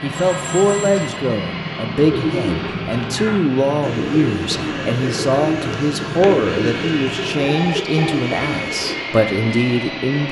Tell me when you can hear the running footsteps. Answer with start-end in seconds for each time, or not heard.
not heard.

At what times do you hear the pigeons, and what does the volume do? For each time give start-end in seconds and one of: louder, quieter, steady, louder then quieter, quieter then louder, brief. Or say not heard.
2.0-9.1 steady.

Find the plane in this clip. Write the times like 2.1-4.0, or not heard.
0.0-10.2.